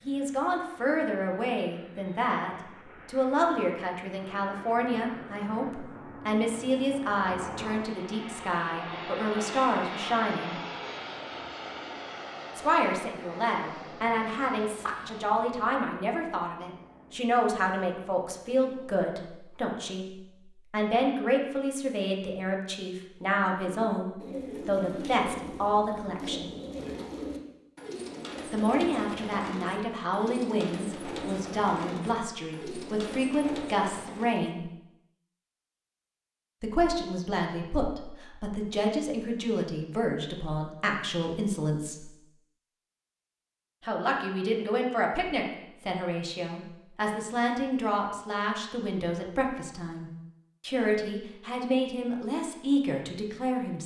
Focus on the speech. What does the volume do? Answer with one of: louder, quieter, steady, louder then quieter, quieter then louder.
steady.